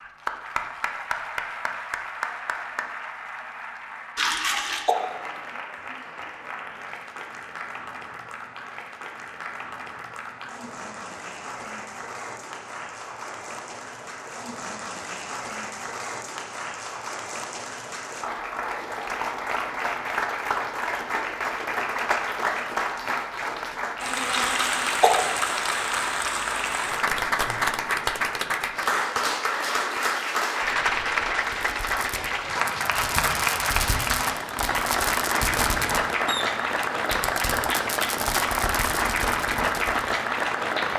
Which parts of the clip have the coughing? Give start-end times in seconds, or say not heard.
4.2-5.0, 24.3-25.1.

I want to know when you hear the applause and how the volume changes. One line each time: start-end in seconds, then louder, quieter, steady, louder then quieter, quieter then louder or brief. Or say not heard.
0.0-40.9 louder.